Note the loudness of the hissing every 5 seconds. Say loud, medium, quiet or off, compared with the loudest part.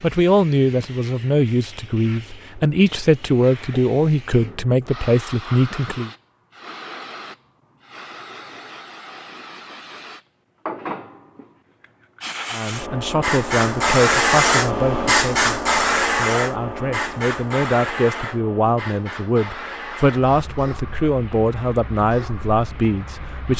quiet, quiet, loud, loud, quiet.